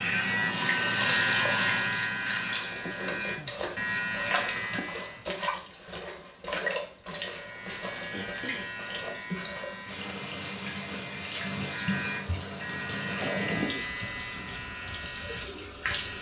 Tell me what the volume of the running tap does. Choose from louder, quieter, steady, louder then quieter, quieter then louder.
quieter.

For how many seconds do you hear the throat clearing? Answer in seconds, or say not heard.
2 s.